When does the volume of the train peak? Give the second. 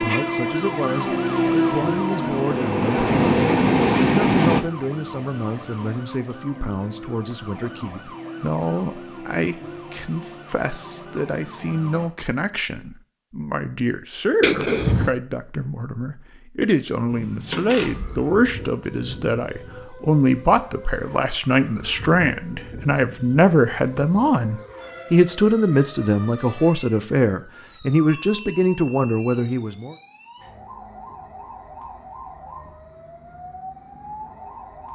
4 s.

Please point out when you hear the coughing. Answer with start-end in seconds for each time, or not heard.
14.4-15.1.